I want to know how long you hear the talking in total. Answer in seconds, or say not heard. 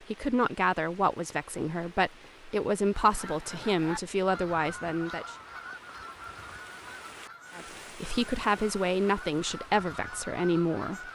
9 s.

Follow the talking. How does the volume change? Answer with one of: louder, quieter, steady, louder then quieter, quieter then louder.
steady.